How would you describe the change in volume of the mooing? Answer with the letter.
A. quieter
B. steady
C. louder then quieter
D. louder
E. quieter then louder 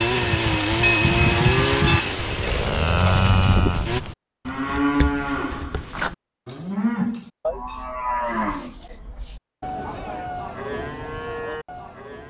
A.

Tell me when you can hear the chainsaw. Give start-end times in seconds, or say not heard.
0.0-4.0.